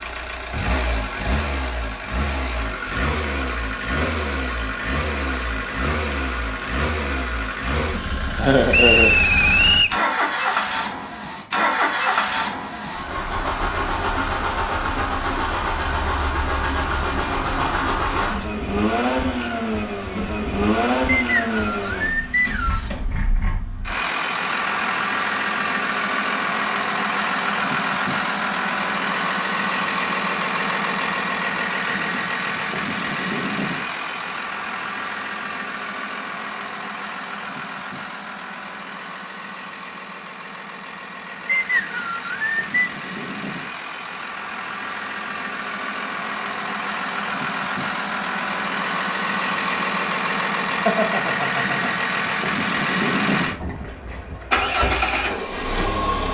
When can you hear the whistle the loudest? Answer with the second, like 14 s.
9 s.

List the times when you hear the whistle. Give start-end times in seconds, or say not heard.
8.7-10.0, 21.1-22.9, 41.5-42.9.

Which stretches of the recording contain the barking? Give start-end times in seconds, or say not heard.
not heard.